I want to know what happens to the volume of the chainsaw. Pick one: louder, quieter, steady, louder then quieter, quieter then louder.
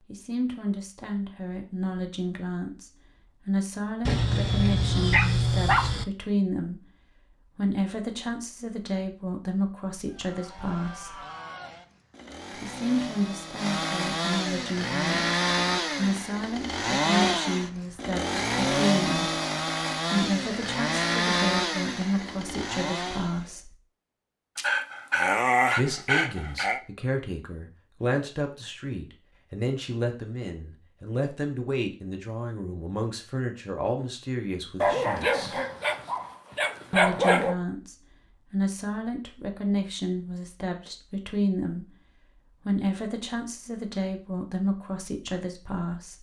louder.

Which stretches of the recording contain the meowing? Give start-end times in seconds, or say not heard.
not heard.